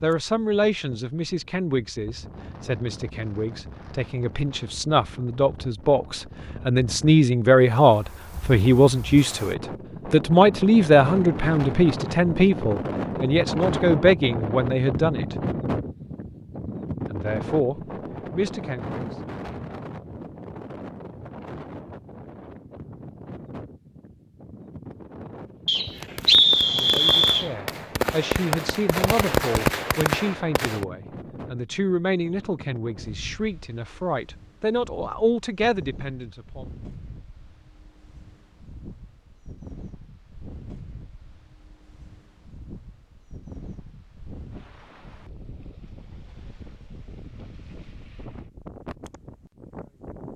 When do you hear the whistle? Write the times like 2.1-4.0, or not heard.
25.6-27.5.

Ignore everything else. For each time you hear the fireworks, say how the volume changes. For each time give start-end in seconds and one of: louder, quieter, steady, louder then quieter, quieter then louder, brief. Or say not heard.
25.9-30.9 louder.